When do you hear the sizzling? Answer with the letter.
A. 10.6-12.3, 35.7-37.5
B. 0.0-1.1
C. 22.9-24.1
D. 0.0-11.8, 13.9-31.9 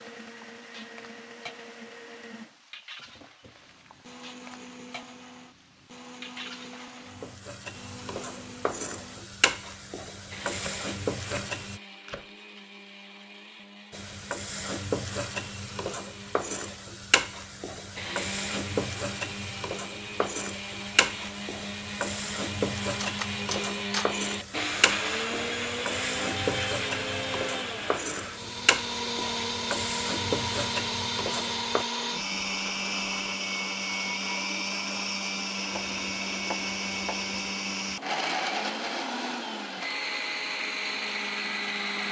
D.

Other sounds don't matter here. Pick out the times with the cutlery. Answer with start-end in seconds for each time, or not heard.
22.9-24.1.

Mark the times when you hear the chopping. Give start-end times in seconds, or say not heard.
10.6-12.3, 35.7-37.5.